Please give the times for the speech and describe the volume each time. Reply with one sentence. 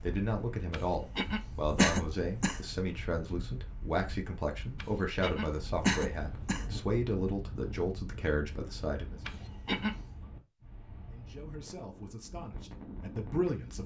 The speech can be heard from 0.0 to 9.2 s, at a steady volume; and briefly from 11.1 to 13.8 s.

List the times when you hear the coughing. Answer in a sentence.
You can hear the coughing from 0.7 to 2.6 s, from 4.8 to 6.7 s and from 9.2 to 9.9 s.